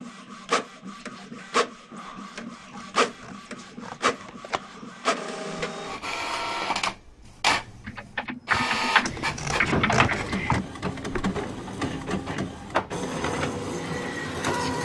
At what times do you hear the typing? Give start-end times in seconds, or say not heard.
7.8-11.3.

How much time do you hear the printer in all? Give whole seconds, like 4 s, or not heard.
15 s.